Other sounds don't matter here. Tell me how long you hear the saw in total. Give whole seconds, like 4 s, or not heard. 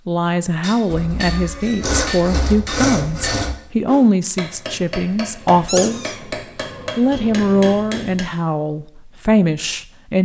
5 s.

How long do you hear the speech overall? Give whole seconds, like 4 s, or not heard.
9 s.